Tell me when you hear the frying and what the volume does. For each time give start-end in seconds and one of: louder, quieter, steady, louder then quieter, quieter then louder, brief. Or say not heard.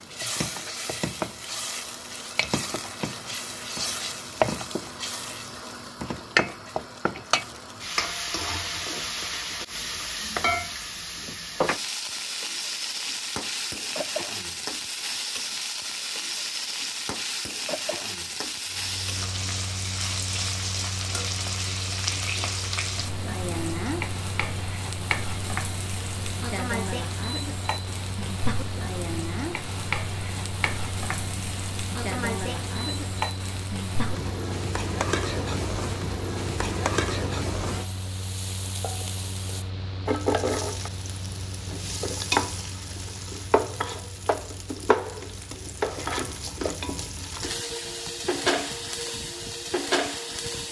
0.0-50.6 steady.